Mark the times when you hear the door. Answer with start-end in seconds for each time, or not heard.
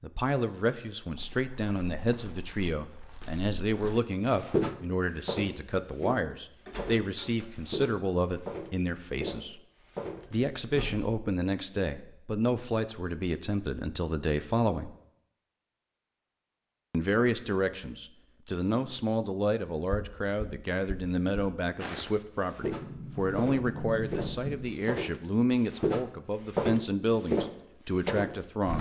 6.7-8.1, 10.2-11.1, 22.8-24.8.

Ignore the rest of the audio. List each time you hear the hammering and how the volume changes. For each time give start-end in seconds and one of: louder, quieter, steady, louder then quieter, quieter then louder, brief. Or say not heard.
not heard.